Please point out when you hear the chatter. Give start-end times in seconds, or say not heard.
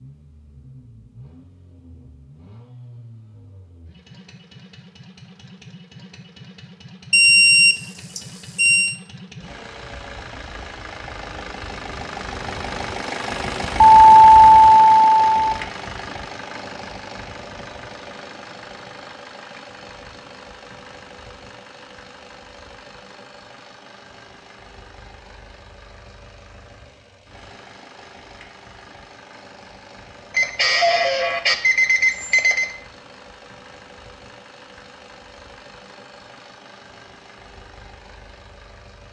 not heard.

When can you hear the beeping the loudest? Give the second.
14 s.